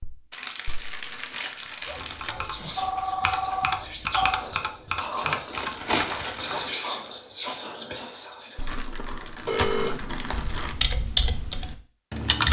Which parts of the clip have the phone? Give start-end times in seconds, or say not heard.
1.9-4.5, 9.4-10.3.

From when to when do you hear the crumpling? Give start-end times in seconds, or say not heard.
0.3-2.4, 5.5-6.7, 8.6-10.8.